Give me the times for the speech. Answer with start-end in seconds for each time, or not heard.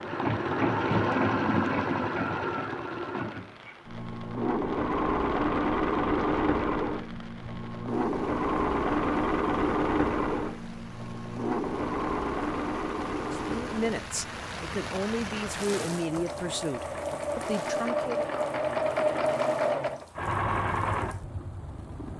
13.3-18.2.